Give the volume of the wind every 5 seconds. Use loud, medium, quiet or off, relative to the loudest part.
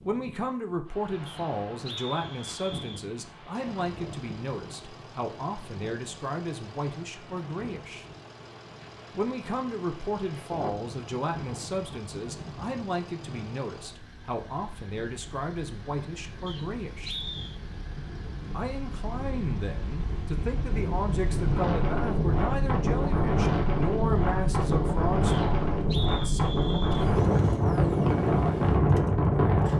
quiet, quiet, quiet, quiet, loud, loud.